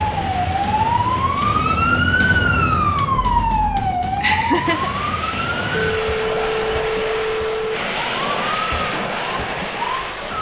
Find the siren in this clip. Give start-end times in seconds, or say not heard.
0.0-10.3.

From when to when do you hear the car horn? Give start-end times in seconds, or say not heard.
not heard.